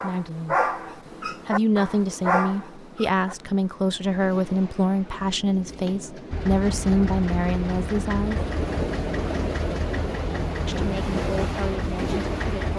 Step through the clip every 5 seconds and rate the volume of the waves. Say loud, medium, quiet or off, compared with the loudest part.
quiet, loud, loud.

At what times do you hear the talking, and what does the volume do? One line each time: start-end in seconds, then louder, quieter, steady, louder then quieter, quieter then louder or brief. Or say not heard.
0.0-0.6 brief
1.4-8.4 steady
10.7-12.7 brief.